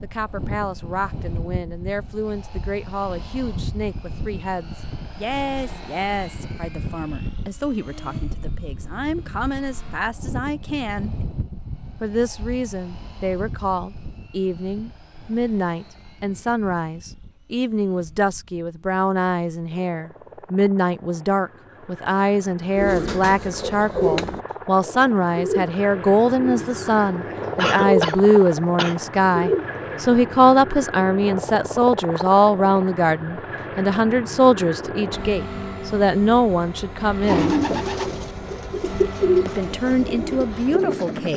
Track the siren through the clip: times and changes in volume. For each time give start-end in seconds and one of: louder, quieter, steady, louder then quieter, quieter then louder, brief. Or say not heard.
not heard.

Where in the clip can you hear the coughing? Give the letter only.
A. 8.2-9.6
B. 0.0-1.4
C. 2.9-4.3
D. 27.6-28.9
D.